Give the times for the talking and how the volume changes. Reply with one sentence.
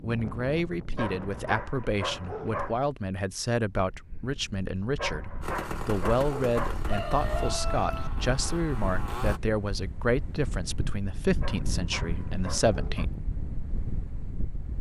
You can hear the talking from 0.0 to 13.2 s, at a steady volume.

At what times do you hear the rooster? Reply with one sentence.
The rooster can be heard from 6.5 to 8.1 s.